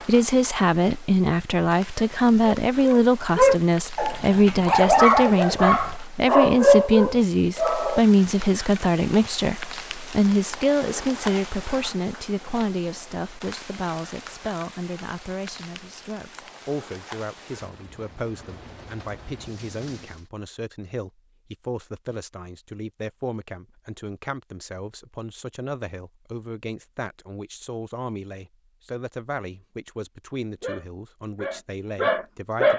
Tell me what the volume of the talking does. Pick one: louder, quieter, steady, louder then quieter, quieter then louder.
quieter.